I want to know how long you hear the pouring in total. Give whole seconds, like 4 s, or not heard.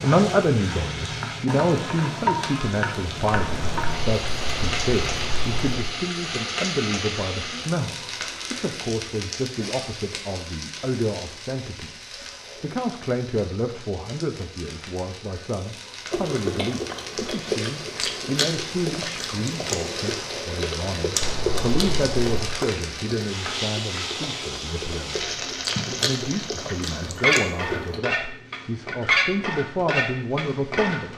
4 s.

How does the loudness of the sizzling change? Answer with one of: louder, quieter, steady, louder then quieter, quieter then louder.
quieter then louder.